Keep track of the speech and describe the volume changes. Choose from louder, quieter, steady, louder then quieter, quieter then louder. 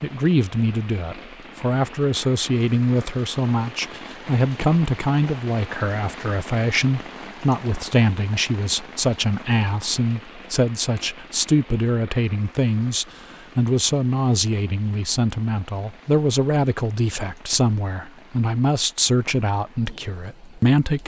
steady.